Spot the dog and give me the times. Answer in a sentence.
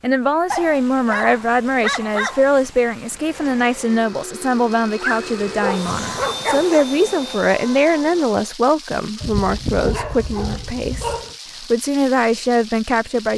You can hear the dog from 0.5 to 2.5 s, from 5.0 to 6.8 s and from 9.2 to 11.3 s.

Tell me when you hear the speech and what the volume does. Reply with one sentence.
You can hear the speech from 0.0 to 13.3 s, at a steady volume.